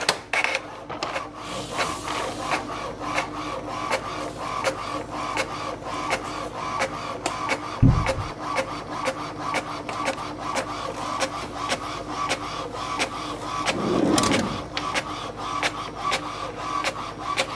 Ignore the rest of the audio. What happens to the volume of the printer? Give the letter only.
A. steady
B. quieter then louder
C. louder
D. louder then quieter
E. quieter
A.